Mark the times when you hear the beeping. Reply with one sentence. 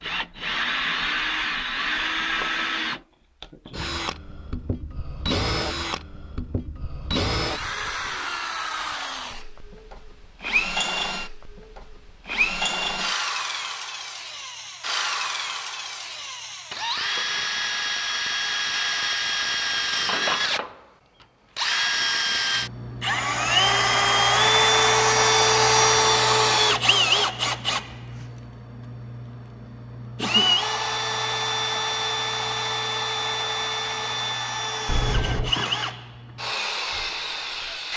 The beeping can be heard from 34.9 to 35.5 s.